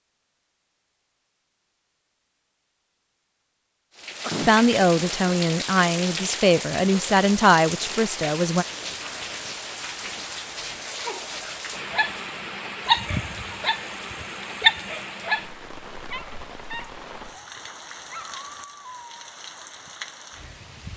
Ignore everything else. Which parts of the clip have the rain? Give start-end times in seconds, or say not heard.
4.0-20.9.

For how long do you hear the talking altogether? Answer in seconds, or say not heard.
4 s.